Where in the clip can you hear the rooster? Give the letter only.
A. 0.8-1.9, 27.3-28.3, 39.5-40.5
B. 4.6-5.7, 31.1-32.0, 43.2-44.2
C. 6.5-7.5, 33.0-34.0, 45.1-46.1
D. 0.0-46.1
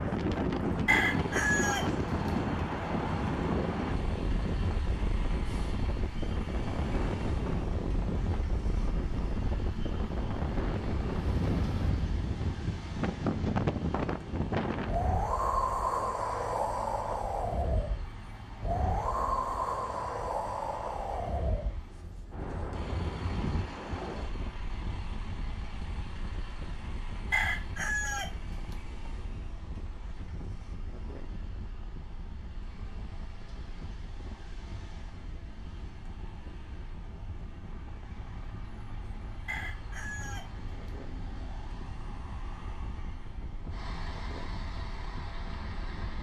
A.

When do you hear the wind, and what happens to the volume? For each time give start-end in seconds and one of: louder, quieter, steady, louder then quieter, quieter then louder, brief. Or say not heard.
0.0-46.1 quieter.